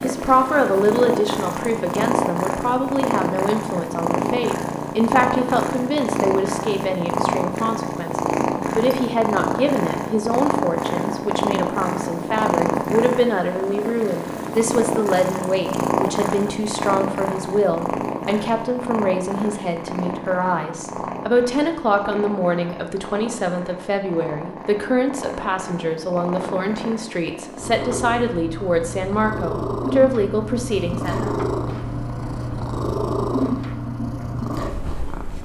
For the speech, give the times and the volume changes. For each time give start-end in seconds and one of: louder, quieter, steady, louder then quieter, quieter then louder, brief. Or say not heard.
0.0-31.3 steady.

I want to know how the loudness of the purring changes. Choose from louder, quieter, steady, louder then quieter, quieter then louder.
quieter then louder.